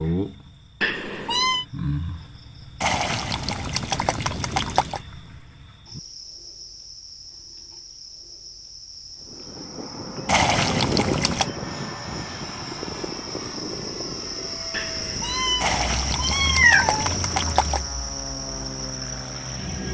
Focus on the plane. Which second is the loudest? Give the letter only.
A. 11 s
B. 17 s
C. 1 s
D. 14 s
A.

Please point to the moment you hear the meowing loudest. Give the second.
17 s.